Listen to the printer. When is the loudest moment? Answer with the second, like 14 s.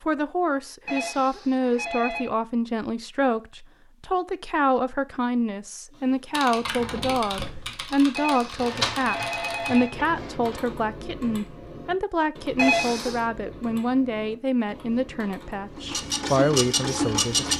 17 s.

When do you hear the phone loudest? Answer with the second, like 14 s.
13 s.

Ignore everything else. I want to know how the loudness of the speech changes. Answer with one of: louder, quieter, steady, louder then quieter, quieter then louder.
steady.